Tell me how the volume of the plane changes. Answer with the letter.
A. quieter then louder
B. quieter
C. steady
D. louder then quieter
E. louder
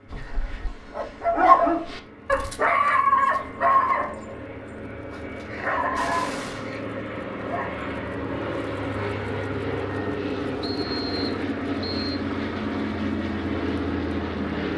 E.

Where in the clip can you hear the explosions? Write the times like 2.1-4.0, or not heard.
6.0-6.8.